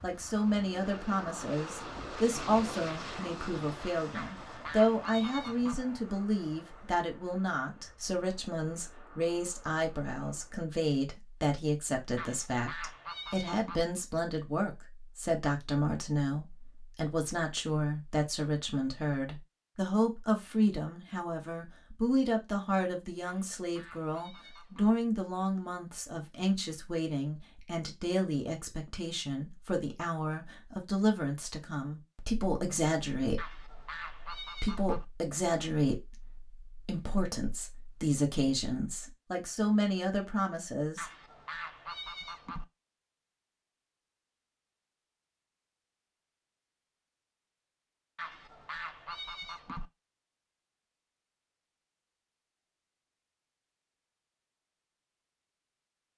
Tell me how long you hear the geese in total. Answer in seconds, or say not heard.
10 s.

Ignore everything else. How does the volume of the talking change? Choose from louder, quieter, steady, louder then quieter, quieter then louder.
steady.